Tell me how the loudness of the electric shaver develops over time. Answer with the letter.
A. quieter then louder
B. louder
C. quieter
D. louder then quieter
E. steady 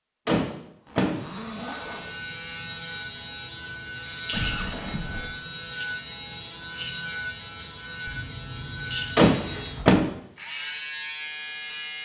E.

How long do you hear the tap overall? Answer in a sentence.
You can't hear the tap here.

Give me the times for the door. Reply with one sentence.
The door can be heard from 0.2 to 1.2 s and from 9.2 to 10.1 s.